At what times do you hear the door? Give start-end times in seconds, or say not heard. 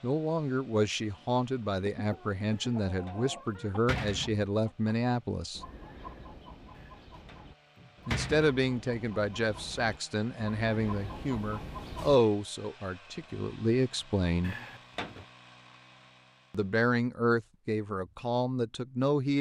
2.5-4.5, 6.8-8.5, 14.4-15.2.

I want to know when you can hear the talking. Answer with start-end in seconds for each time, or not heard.
0.0-5.6, 8.1-14.6, 16.5-19.3.